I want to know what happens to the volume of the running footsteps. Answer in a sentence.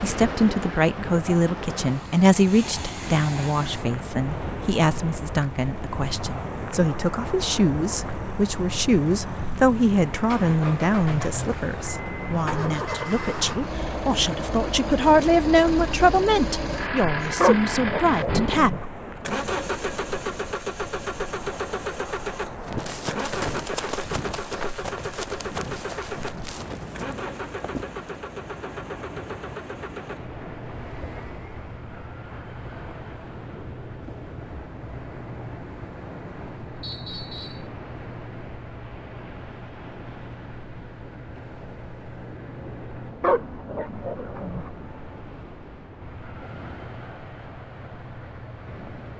The volume of the running footsteps goes down.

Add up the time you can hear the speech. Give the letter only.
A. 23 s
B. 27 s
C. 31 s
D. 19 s
D.